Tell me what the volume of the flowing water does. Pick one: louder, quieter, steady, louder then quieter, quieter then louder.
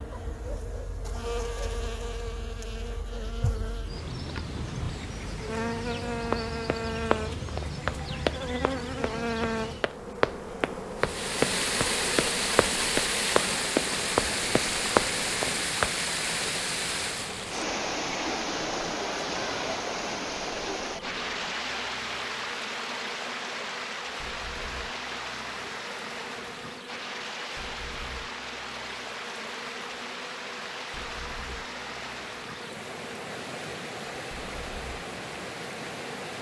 quieter.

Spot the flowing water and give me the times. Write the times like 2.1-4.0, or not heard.
10.9-36.3.